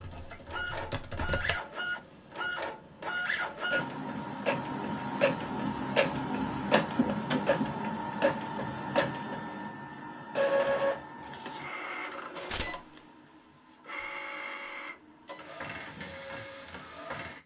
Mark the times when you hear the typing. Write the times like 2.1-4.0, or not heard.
0.0-1.6.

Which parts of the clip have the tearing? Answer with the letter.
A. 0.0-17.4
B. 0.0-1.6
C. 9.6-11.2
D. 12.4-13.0
D.